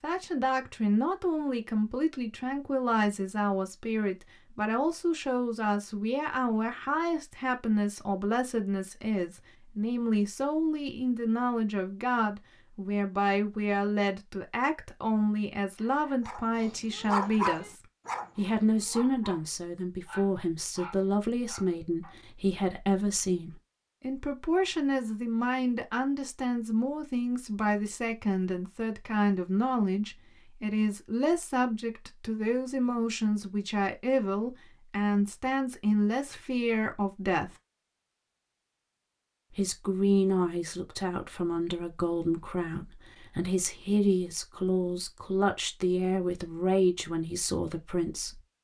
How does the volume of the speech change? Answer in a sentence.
The loudness of the speech stays about the same.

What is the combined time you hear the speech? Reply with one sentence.
The speech can be heard for 46 seconds in total.